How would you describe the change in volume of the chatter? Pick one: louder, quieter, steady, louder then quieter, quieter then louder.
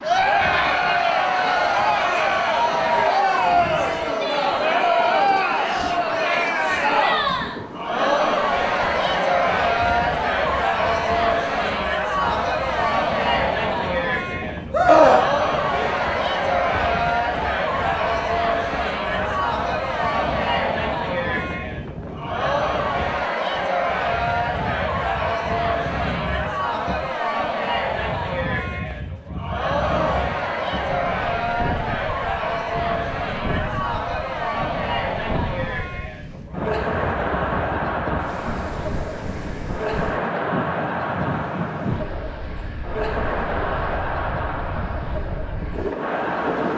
quieter.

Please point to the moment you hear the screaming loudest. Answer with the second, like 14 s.
15 s.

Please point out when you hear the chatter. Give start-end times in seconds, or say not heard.
0.0-46.7.